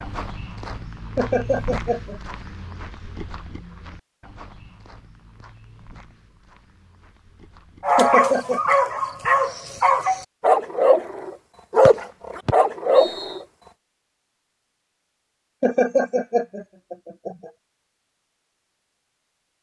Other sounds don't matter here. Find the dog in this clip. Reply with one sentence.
You can hear the dog from 7.8 to 13.4 s.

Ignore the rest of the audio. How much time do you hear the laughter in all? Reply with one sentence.
You can hear the laughter for 4 seconds altogether.